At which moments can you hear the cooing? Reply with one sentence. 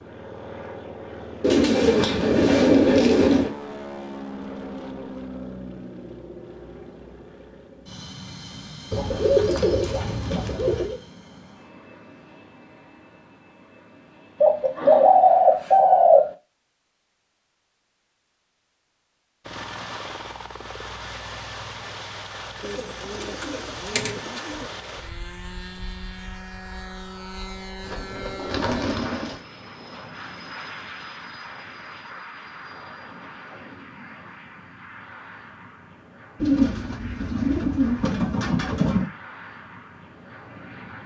The cooing can be heard from 1.4 to 3.5 s, from 8.9 to 11.0 s, from 14.4 to 16.3 s, from 22.6 to 24.6 s, from 27.8 to 29.4 s and from 36.4 to 39.1 s.